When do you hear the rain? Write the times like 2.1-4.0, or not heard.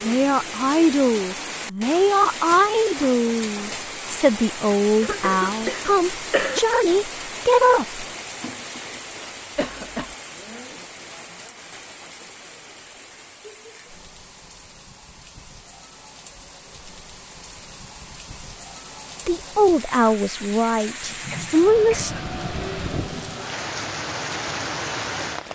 0.0-25.5.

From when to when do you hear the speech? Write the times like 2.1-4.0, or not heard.
0.0-8.1, 19.2-22.1.